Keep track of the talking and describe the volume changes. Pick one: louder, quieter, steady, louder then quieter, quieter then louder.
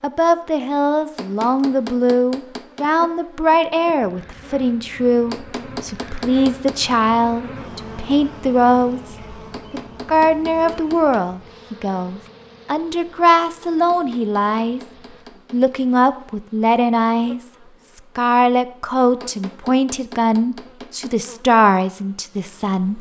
steady.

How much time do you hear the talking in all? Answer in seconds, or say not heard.
22 s.